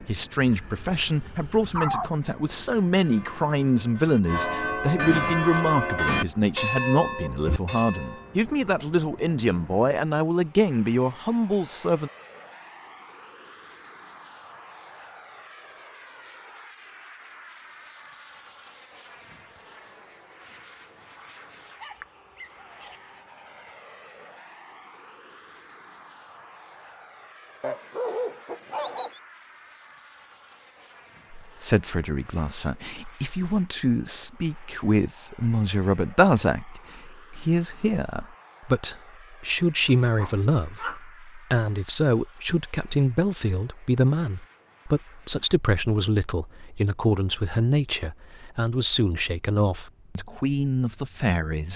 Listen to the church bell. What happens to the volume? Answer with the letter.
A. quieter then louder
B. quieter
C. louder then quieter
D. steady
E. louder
C.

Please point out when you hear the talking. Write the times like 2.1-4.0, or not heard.
0.0-12.1, 31.4-51.7.